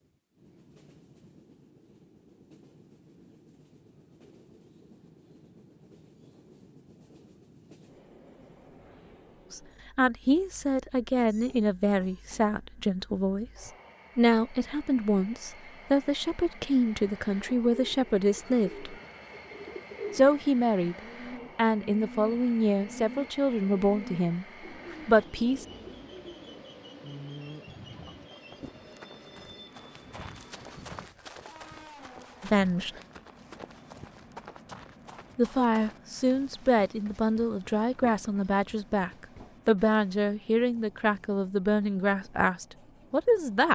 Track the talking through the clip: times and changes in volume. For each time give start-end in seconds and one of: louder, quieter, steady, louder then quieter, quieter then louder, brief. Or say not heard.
9.5-18.9 steady
20.1-20.9 brief
21.6-24.4 brief
25.1-25.6 brief
32.4-32.9 brief
35.4-43.7 steady.